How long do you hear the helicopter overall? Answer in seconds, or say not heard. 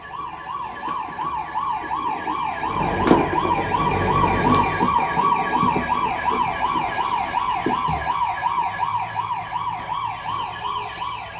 2 s.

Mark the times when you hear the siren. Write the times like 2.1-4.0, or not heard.
0.0-11.3.